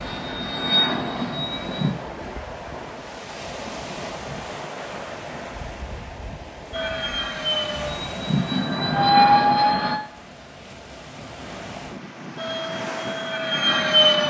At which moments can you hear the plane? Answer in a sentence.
You can hear the plane from 0.0 to 1.9 s, from 6.7 to 10.0 s and from 12.3 to 14.2 s.